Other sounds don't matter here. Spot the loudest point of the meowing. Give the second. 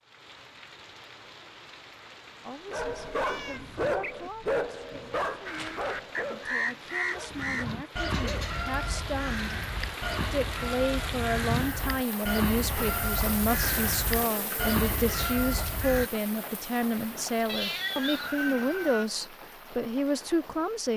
18 s.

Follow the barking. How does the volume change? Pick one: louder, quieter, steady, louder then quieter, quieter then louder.
quieter.